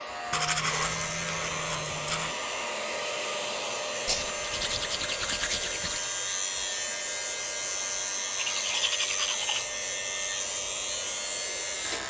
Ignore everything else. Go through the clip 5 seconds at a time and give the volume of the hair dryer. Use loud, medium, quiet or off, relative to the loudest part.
loud, medium, medium.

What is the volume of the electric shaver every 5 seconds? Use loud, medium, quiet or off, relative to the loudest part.
medium, loud, loud.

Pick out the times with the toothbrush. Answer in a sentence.
You can hear the toothbrush from 0.3 to 2.4 s, from 4.0 to 6.1 s and from 8.3 to 9.7 s.